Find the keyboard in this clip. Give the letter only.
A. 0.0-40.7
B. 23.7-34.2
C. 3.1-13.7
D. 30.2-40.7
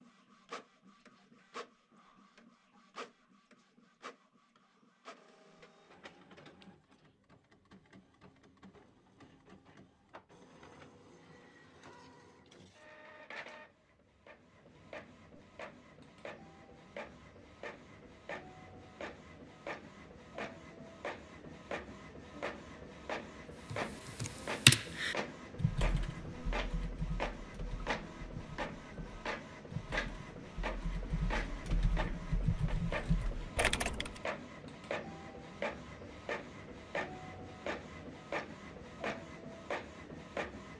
B.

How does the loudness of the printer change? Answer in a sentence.
The volume of the printer goes up.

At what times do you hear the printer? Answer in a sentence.
The printer can be heard from 0.0 to 40.7 s.